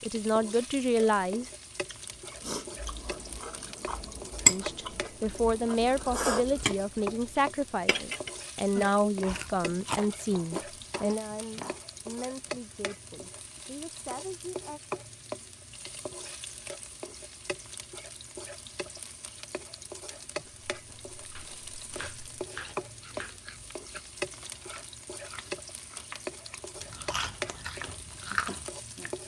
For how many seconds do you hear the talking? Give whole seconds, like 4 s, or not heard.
12 s.